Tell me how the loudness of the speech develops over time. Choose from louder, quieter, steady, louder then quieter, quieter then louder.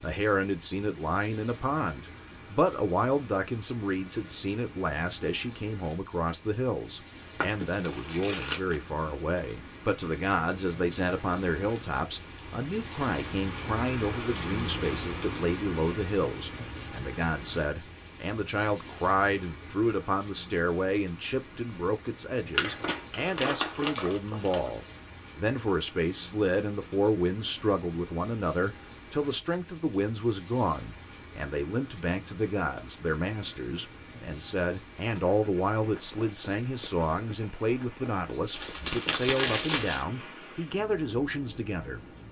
steady.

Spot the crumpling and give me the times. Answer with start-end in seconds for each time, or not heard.
7.4-8.8, 22.5-24.7, 38.5-40.0.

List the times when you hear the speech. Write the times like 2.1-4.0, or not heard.
0.0-42.0.